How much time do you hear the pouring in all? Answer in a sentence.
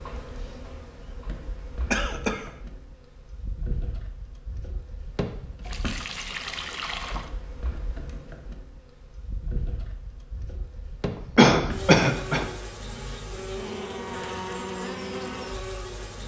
The pouring can be heard for 2 seconds in total.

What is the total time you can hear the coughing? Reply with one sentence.
The coughing can be heard for 2 seconds in total.